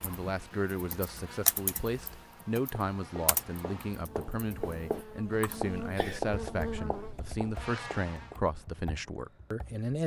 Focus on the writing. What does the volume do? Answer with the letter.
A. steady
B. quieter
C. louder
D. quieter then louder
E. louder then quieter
E.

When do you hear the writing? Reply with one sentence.
The writing can be heard from 2.9 to 8.4 s.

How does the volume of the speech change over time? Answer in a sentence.
The loudness of the speech stays about the same.